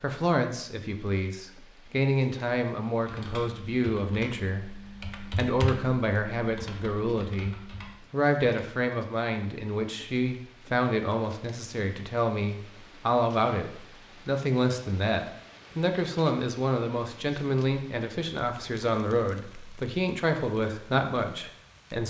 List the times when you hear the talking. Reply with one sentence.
You can hear the talking from 0.0 to 22.0 s.